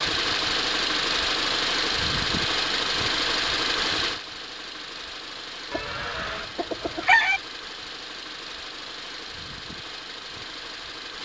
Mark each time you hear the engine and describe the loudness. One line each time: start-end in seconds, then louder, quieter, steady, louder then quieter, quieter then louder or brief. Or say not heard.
0.0-11.2 quieter.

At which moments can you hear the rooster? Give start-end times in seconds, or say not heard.
5.7-7.4.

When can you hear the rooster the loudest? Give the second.
7 s.